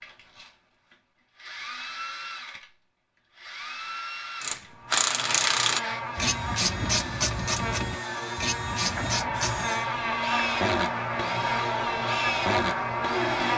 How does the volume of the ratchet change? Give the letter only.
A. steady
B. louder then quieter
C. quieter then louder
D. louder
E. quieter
E.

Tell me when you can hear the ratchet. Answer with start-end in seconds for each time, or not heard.
4.4-9.8.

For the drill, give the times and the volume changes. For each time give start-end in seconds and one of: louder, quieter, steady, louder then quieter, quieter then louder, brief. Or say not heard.
0.0-13.5 louder.